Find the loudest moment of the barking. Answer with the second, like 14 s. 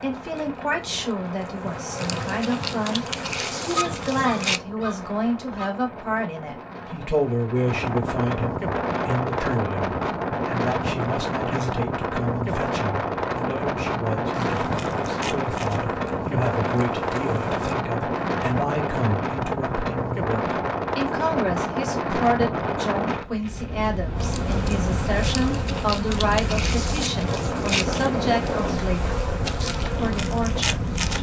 4 s.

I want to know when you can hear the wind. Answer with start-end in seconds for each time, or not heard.
0.0-31.1.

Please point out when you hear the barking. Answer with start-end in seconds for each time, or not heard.
3.7-5.7.